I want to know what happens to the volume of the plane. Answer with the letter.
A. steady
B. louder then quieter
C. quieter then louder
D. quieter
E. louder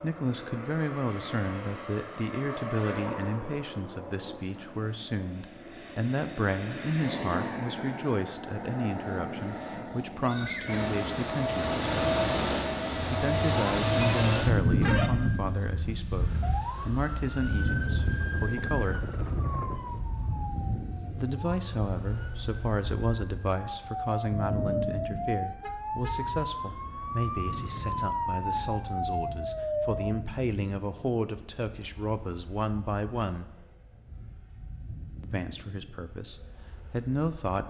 B.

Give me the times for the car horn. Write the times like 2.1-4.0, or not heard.
14.0-15.1, 25.6-26.2.